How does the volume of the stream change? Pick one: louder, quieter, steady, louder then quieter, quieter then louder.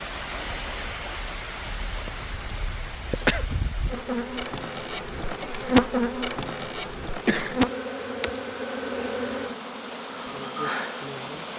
quieter then louder.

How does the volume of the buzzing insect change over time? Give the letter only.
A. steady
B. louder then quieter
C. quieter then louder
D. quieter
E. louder
B.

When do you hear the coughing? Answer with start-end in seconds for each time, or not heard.
1.9-3.5, 6.8-7.5.